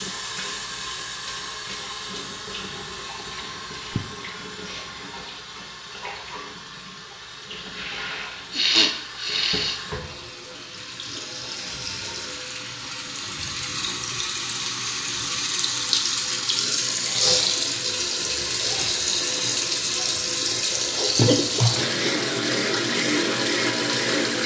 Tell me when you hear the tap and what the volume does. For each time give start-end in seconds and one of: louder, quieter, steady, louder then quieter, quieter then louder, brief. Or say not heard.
0.0-24.4 louder.